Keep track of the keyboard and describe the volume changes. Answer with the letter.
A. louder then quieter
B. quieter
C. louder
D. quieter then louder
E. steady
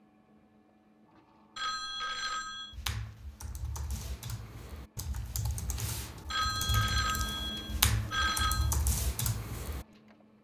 C.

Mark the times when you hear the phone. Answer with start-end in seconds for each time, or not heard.
1.6-2.8, 6.3-8.7.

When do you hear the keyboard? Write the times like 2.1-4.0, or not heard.
2.7-9.8.